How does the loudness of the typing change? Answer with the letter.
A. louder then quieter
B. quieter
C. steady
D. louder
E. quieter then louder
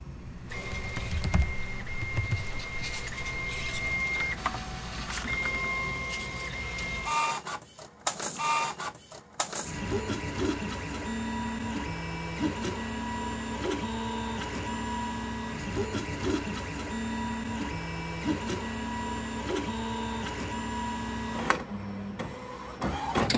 E.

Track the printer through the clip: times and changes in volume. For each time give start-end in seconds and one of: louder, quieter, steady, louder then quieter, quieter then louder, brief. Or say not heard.
0.0-23.3 steady.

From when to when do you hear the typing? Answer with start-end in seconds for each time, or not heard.
0.1-5.7.